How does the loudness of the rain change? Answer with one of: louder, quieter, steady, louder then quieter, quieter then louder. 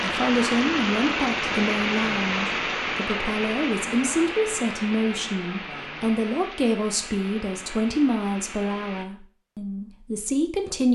quieter.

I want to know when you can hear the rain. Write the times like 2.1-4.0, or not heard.
0.0-9.1.